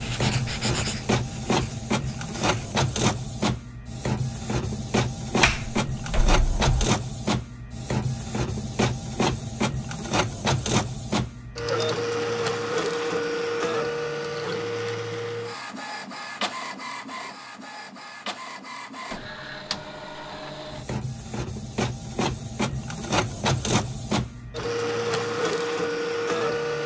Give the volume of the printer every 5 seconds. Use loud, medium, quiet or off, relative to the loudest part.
loud, loud, loud, medium, loud, loud.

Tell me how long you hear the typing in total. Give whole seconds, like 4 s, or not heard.
not heard.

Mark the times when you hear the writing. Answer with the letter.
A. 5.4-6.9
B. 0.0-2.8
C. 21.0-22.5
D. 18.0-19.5
B.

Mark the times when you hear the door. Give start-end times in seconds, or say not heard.
5.4-6.9.